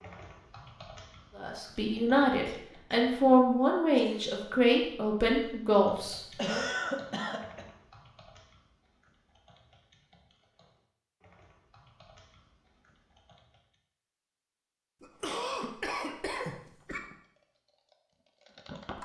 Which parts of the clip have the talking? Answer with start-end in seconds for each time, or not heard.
1.4-6.6.